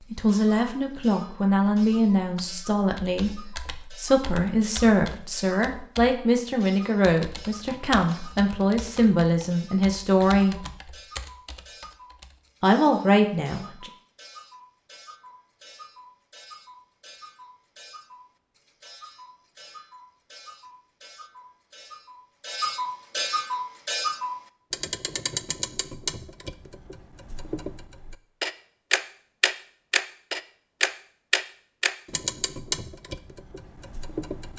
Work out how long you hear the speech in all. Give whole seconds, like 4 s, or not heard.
12 s.